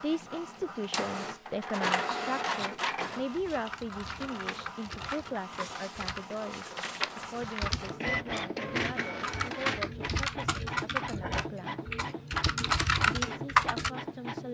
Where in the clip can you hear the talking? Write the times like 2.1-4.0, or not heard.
0.0-11.8, 13.1-14.4.